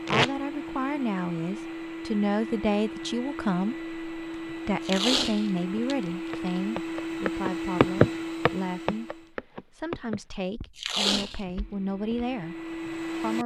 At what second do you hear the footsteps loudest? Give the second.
8 s.